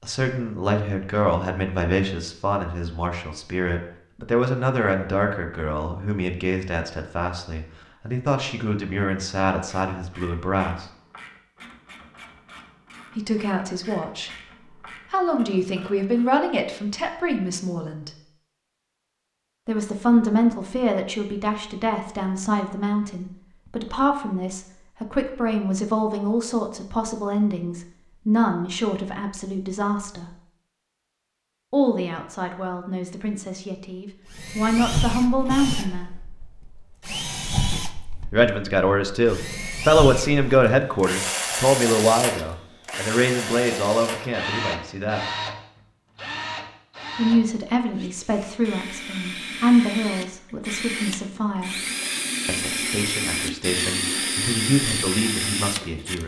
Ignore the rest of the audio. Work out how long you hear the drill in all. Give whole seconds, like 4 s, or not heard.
22 s.